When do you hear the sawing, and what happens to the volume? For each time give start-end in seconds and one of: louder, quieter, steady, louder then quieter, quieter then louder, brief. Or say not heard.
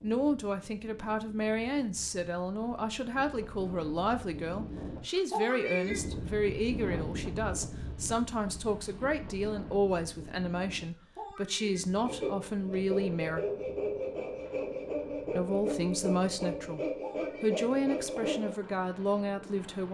12.1-18.6 steady.